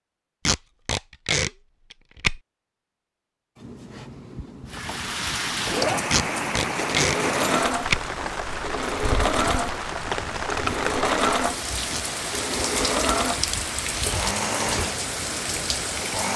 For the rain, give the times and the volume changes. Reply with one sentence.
You can hear the rain from 4.7 to 16.3 s, at a steady volume.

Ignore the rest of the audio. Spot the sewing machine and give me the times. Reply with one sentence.
You can hear the sewing machine from 3.5 to 16.3 s.